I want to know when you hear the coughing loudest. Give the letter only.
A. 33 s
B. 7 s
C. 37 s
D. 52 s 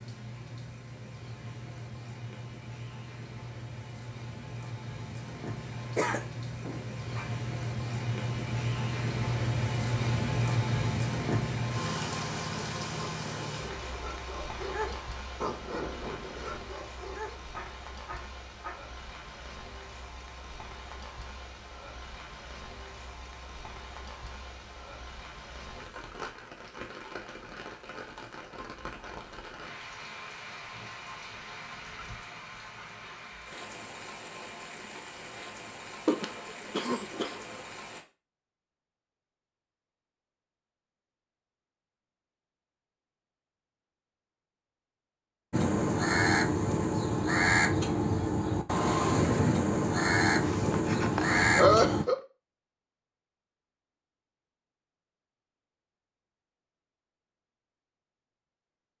D.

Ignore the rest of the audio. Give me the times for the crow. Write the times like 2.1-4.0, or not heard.
45.5-52.0.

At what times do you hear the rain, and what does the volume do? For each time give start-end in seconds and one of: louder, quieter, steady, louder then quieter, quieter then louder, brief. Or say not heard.
0.0-38.0 louder then quieter.